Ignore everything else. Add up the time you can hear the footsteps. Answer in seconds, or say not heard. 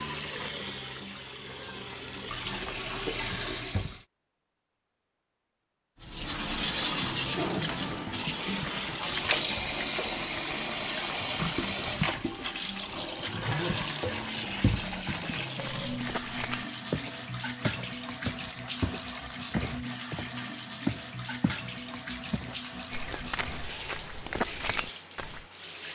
9 s.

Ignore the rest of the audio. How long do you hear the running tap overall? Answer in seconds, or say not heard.
24 s.